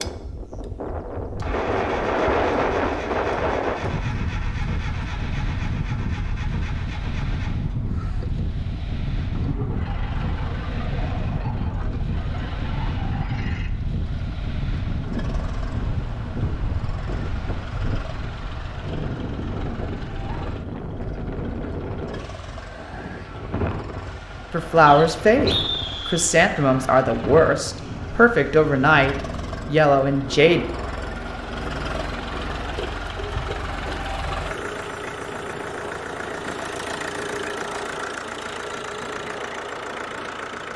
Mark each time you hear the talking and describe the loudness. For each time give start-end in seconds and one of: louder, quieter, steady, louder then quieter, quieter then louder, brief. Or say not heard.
24.5-30.6 steady.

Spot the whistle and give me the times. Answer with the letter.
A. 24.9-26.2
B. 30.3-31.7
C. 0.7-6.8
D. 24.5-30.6
A.